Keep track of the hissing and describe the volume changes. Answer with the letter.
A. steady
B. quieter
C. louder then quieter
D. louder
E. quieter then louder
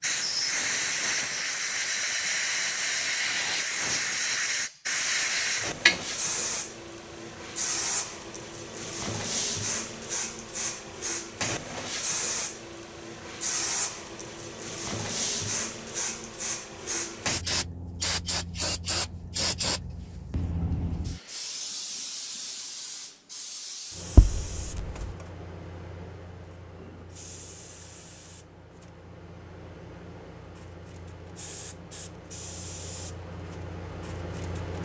B.